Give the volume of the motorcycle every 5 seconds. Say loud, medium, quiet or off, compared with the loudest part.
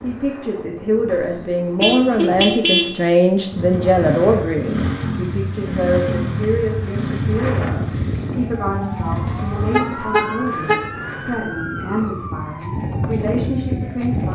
loud, loud, off.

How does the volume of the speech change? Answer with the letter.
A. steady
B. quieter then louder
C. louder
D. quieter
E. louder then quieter
D.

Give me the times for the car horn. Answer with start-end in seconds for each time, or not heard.
1.2-3.0, 9.7-10.8.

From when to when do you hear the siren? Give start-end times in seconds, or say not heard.
8.3-14.2.